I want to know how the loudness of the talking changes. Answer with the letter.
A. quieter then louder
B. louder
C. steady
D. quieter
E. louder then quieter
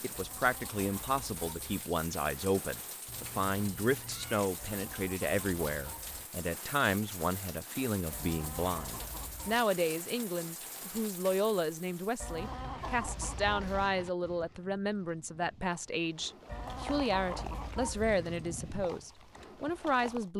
C.